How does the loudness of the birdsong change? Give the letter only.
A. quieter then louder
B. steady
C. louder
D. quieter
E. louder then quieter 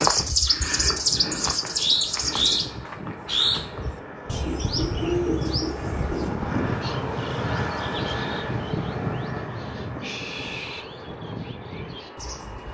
D.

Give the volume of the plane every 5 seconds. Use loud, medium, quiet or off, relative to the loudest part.
medium, loud, medium.